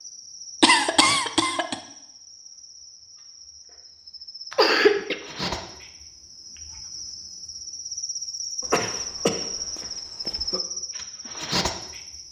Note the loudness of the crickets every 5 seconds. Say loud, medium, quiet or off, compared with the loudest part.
quiet, loud, loud.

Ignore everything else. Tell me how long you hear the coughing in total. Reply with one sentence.
You can hear the coughing for 4 seconds altogether.